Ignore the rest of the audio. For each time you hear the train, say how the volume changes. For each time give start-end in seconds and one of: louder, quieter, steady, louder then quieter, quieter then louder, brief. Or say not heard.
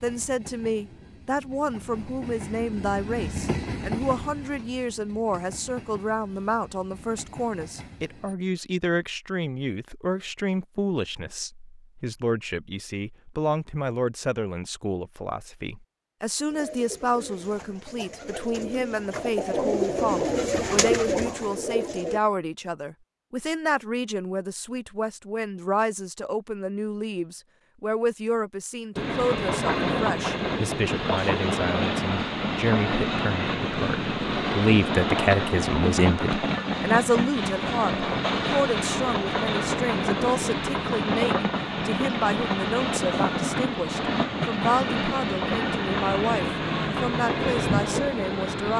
0.0-8.3 louder then quieter
28.9-48.7 steady.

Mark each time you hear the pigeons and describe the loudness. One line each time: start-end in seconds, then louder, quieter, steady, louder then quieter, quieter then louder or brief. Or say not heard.
16.5-22.2 louder.